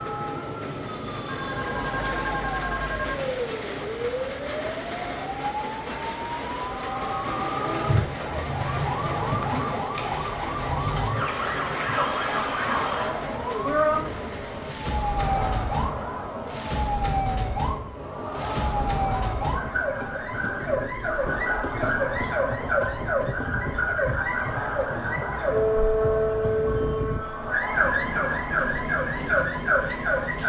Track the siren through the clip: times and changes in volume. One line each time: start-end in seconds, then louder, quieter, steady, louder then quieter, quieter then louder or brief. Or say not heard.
0.0-30.4 louder.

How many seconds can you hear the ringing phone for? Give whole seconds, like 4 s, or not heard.
2 s.